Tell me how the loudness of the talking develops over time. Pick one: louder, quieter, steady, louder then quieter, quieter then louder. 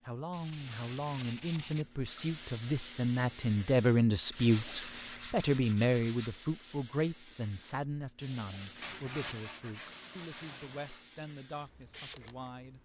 louder then quieter.